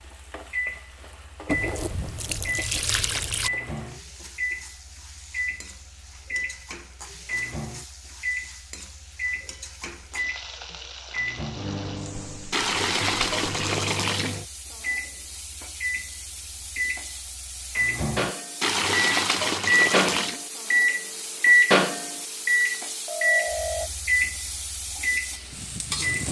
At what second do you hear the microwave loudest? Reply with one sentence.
The loudest moment of the microwave is at 21 seconds.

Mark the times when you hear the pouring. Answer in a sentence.
The pouring can be heard from 1.4 to 3.5 s, from 12.5 to 14.4 s and from 18.6 to 20.4 s.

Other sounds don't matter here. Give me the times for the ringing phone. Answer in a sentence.
You can hear the ringing phone from 22.6 to 23.9 s.